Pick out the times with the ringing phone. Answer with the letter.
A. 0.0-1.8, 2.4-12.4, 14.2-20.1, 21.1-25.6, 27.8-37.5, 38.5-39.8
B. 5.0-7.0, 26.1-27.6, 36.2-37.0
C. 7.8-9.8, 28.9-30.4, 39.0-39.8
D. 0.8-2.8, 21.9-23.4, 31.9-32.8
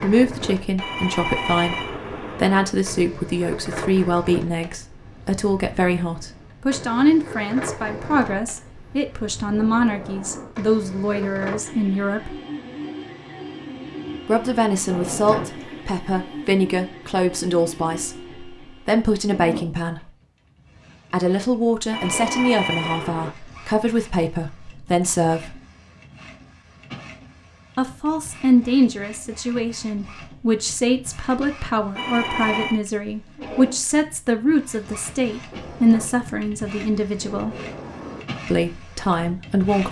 D.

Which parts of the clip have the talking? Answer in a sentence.
The talking can be heard from 0.0 to 1.8 s, from 2.4 to 12.4 s, from 14.2 to 20.1 s, from 21.1 to 25.6 s, from 27.8 to 37.5 s and from 38.5 to 39.8 s.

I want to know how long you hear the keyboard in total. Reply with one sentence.
The keyboard can't be heard in this clip.